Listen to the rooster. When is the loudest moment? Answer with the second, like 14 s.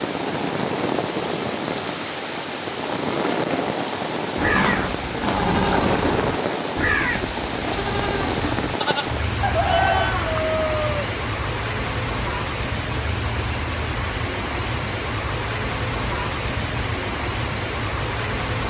10 s.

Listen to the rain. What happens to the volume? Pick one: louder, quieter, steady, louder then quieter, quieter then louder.
steady.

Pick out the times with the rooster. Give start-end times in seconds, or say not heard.
9.4-11.1.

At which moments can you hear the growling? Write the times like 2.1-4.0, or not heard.
4.5-6.0.